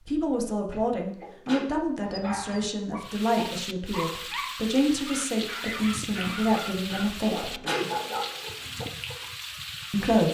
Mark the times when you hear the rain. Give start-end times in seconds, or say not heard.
3.0-10.3.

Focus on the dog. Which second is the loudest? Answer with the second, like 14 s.
8 s.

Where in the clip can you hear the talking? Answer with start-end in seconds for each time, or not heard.
0.1-7.6, 9.9-10.3.